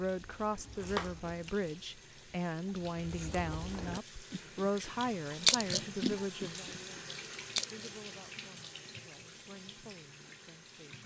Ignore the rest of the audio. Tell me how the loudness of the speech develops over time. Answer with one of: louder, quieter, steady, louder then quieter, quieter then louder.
quieter.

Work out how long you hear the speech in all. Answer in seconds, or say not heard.
11 s.